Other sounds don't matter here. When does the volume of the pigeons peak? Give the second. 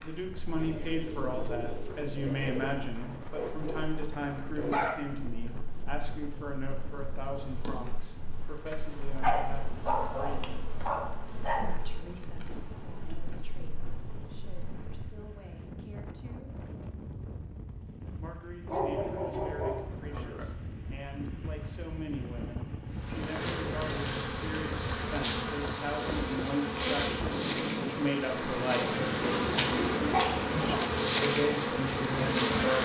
30 s.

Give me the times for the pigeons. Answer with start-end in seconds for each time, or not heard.
0.6-2.6, 29.2-30.9.